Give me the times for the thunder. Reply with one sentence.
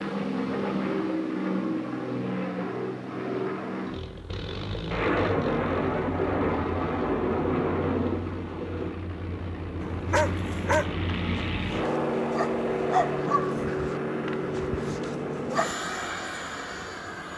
You can hear the thunder from 4.9 to 8.9 s.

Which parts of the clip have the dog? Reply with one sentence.
The dog can be heard from 9.8 to 15.8 s.